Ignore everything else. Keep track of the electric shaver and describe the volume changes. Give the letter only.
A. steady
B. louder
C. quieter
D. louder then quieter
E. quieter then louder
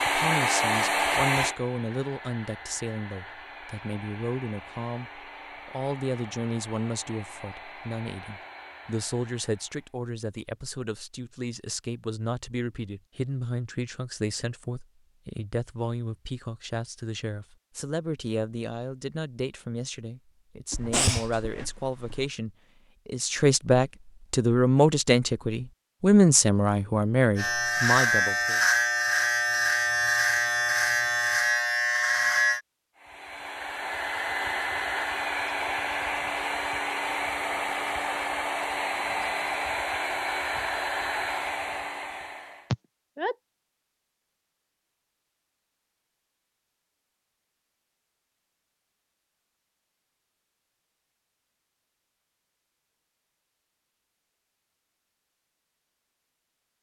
A.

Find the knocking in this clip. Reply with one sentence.
You can't hear the knocking here.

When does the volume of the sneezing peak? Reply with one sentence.
The volume of the sneezing peaks at 21 seconds.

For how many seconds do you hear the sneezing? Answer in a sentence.
The sneezing can be heard for 2 seconds in total.